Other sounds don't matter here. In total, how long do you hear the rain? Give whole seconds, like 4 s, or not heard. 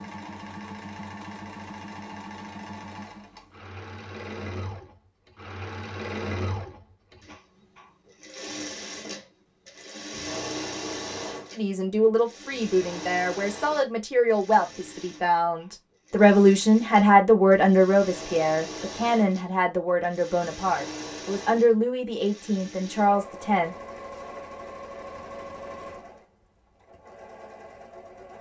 not heard.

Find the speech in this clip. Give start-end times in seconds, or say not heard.
11.5-23.8.